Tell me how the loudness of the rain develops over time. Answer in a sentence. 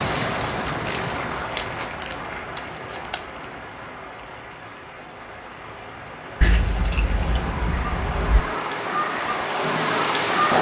The loudness of the rain goes down, then up.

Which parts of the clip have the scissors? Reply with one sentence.
You can hear the scissors from 0.7 to 3.2 s and from 6.4 to 8.4 s.